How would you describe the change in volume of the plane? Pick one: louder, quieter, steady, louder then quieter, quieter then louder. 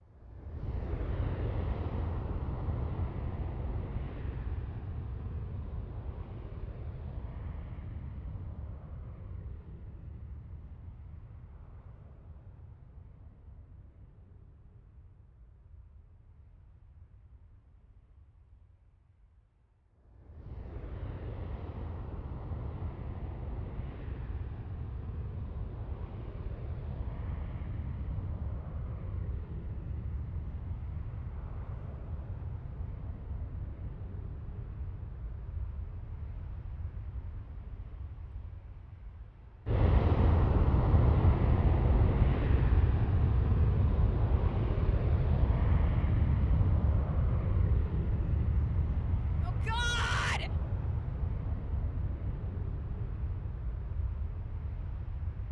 quieter then louder.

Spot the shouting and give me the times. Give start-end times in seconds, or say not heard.
49.4-50.5.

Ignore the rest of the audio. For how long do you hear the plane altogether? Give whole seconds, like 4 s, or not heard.
55 s.